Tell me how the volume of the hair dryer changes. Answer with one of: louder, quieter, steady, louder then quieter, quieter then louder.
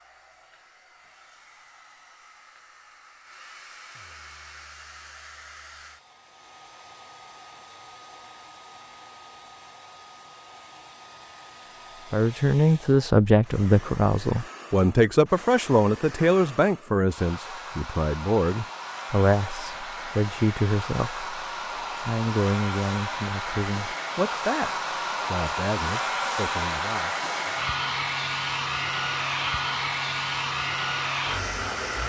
louder.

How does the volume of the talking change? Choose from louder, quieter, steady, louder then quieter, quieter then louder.
quieter.